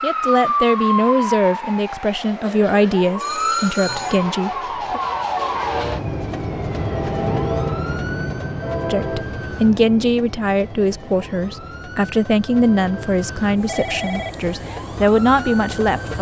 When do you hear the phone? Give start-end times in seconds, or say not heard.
3.2-4.2, 13.7-14.4.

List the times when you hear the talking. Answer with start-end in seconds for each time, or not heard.
0.0-5.0, 8.8-16.1.